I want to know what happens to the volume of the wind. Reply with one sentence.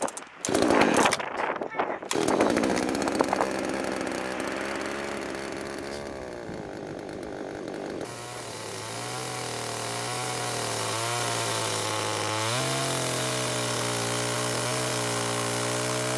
The loudness of the wind goes down.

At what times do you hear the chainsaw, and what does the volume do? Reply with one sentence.
You can hear the chainsaw from 0.0 to 16.1 s, getting quieter then louder.